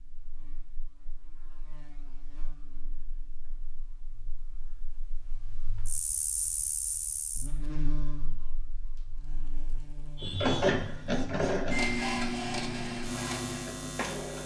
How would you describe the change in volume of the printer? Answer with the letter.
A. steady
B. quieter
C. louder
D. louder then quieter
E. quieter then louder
B.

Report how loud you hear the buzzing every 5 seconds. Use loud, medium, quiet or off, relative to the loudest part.
quiet, loud, loud.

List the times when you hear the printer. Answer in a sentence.
You can hear the printer from 10.2 to 14.4 s.